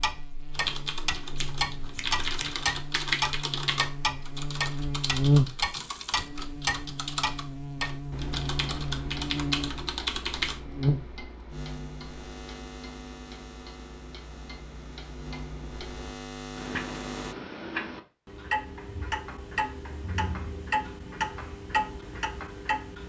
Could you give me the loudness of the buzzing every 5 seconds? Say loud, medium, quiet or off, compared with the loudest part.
medium, loud, medium, medium, off.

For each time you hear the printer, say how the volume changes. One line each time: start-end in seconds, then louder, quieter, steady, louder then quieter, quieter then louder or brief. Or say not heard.
not heard.